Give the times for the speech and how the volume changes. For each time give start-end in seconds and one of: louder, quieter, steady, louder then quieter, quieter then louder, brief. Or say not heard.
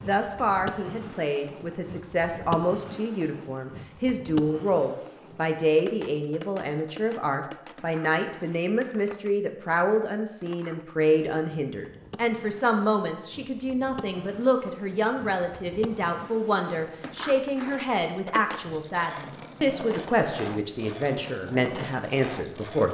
0.0-22.9 steady.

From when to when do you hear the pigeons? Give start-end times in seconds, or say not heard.
not heard.